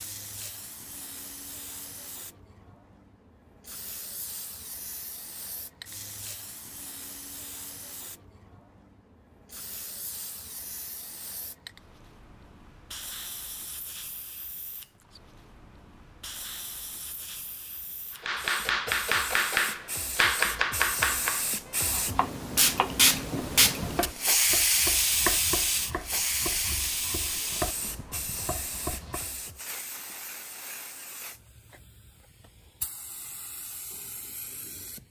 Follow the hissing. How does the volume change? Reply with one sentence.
The volume of the hissing goes up, then down.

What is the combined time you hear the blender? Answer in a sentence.
You can't hear the blender here.